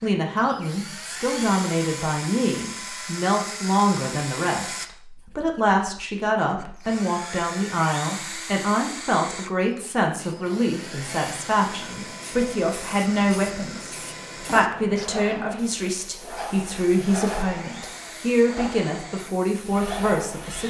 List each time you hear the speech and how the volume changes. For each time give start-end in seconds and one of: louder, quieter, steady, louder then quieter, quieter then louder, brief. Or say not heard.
0.0-20.6 steady.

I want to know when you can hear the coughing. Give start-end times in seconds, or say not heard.
not heard.